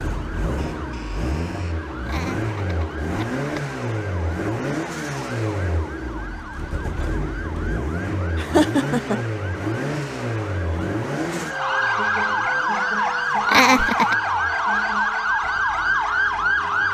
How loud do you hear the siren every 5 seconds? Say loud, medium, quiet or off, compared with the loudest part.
quiet, quiet, loud, loud.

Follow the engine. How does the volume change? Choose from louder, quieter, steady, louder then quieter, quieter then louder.
quieter.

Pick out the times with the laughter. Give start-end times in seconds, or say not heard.
2.0-3.6, 8.3-9.2, 13.4-14.2.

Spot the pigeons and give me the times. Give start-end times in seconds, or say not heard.
not heard.